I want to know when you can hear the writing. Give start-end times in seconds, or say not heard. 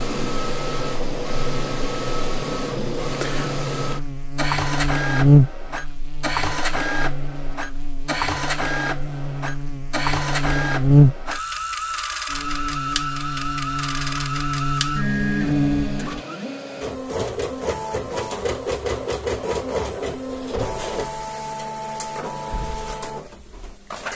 not heard.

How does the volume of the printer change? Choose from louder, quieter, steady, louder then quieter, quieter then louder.
steady.